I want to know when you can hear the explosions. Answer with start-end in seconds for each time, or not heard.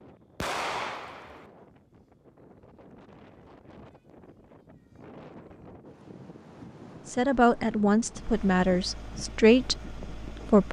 0.3-1.4.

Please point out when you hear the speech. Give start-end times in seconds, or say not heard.
7.0-10.6.